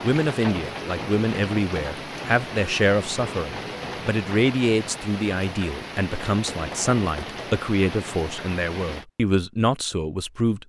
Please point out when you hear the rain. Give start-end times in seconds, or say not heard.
0.0-9.1.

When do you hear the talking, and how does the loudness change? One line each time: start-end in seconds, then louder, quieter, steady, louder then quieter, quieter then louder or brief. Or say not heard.
0.0-10.6 steady.